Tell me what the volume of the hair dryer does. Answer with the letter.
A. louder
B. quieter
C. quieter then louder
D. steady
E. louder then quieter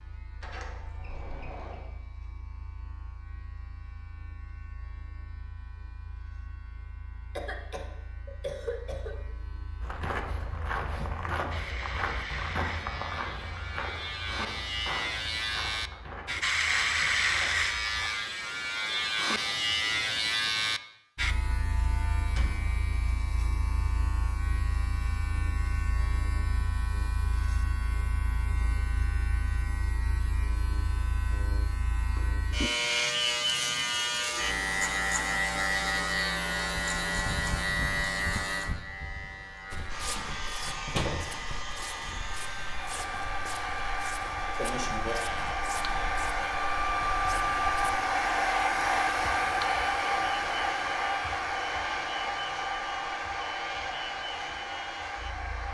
E.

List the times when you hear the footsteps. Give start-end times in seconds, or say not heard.
9.8-18.1, 39.7-48.0.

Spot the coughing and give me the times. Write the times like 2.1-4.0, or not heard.
7.3-9.2, 44.5-45.2.